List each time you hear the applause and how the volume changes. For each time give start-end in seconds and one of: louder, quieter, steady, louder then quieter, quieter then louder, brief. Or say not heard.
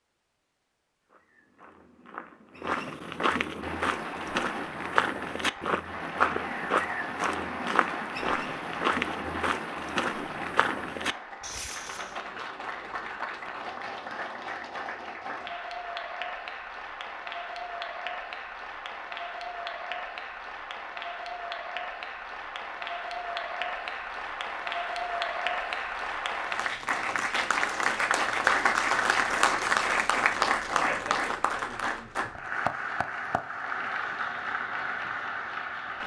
3.6-36.0 louder.